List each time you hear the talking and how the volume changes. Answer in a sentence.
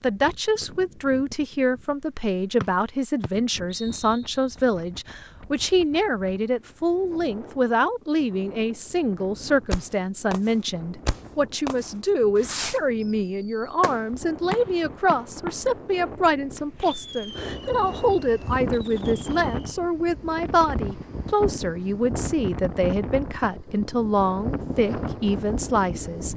You can hear the talking from 0.0 to 26.3 s, at a steady volume.